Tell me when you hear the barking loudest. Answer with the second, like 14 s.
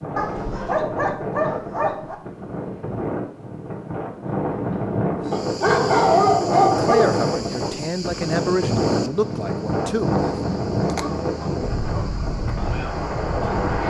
6 s.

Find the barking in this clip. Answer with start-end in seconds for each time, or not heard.
0.1-2.1, 5.3-7.2, 11.2-12.2.